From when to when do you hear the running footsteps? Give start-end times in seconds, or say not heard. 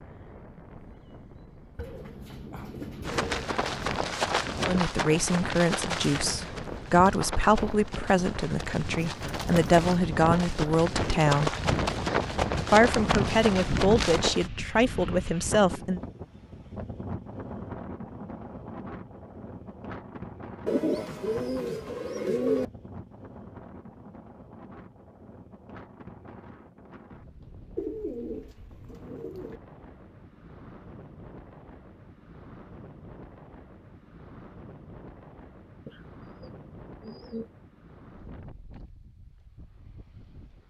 3.0-14.5.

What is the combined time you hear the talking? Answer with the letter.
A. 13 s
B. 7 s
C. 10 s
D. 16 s
C.